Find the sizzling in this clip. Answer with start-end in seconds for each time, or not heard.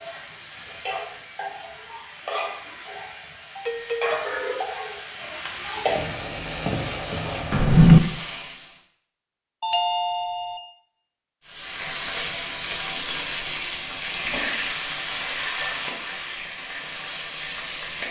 0.0-8.8, 11.4-18.0.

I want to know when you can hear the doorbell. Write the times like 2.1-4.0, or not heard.
3.5-4.2, 9.6-10.6.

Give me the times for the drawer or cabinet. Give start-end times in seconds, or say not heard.
7.5-8.0.